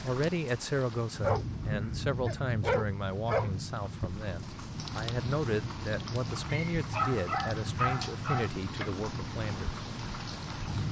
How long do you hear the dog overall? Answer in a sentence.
The dog can be heard for 4 seconds in total.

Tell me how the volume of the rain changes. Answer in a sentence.
The volume of the rain stays about the same.